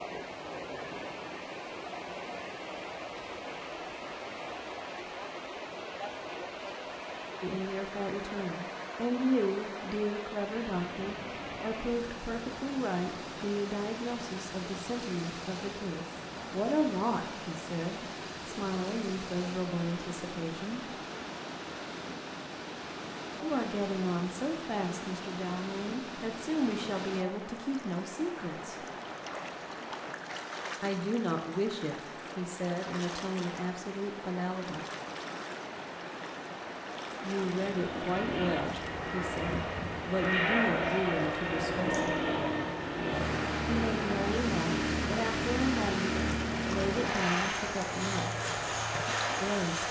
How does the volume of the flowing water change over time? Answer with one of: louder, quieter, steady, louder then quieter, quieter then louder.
steady.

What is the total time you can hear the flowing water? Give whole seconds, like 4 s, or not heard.
50 s.